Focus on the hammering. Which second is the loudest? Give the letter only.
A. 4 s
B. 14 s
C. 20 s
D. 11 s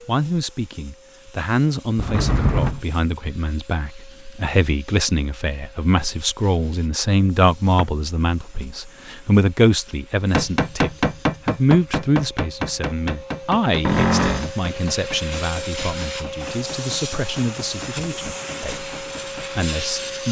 D.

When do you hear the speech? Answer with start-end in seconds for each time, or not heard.
0.1-20.2.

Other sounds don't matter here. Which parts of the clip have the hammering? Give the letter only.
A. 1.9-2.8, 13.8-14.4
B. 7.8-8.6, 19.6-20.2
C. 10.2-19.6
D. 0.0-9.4
C.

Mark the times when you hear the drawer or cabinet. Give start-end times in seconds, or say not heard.
1.9-2.8, 13.8-14.4.